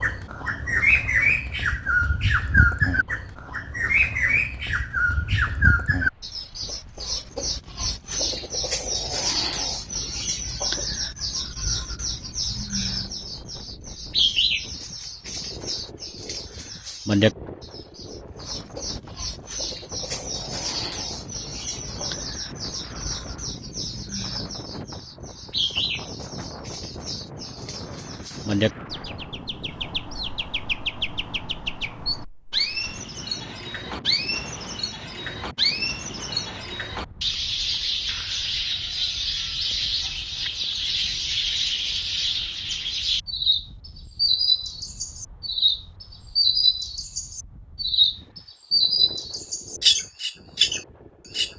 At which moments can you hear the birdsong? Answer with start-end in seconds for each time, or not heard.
0.0-51.5.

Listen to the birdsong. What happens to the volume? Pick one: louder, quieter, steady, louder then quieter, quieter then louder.
quieter then louder.